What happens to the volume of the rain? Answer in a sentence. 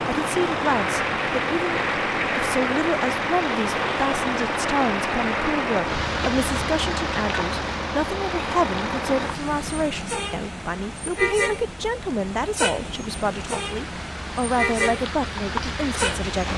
The loudness of the rain goes down, then up.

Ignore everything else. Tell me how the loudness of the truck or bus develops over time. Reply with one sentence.
The volume of the truck or bus stays about the same.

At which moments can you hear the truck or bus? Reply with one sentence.
You can hear the truck or bus from 0.0 to 16.5 s.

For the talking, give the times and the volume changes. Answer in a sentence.
The talking can be heard from 0.1 to 16.5 s, at a steady volume.